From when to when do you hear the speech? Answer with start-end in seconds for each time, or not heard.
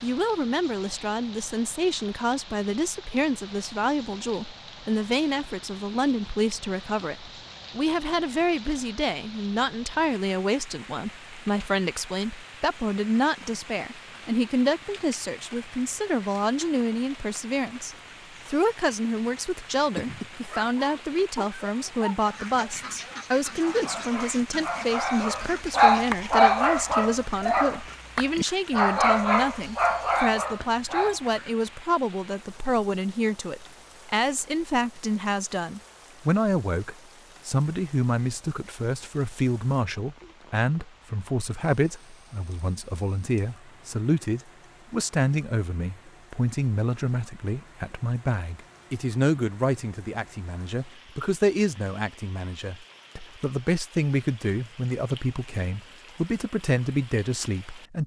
0.0-58.0.